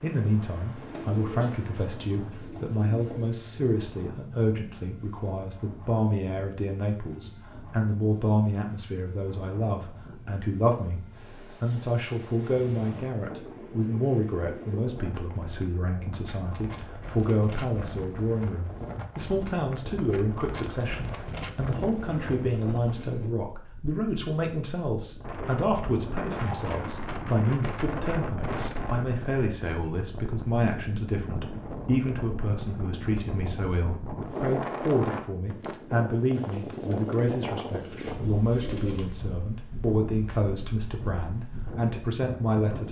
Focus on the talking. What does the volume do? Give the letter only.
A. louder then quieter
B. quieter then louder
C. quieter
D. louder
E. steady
E.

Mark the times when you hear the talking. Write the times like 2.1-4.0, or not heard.
0.0-42.8.